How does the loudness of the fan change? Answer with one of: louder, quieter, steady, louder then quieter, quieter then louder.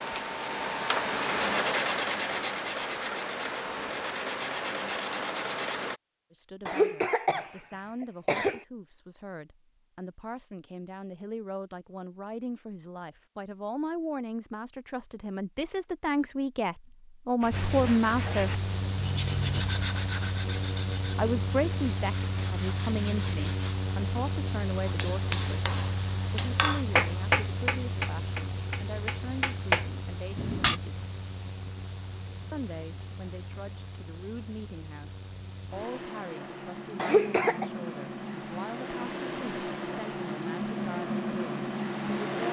quieter then louder.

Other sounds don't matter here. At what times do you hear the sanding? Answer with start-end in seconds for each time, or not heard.
0.0-6.0, 17.4-23.8.